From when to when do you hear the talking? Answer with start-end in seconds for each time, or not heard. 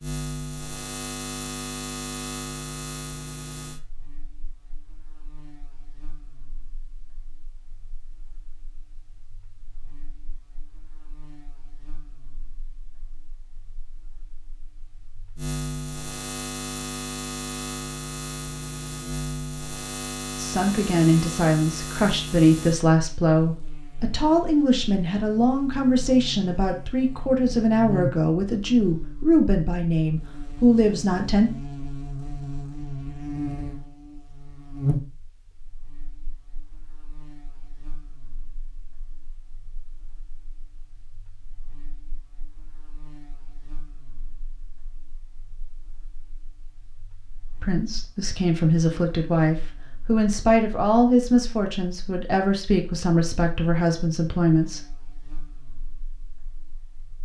20.4-31.5, 47.6-54.8.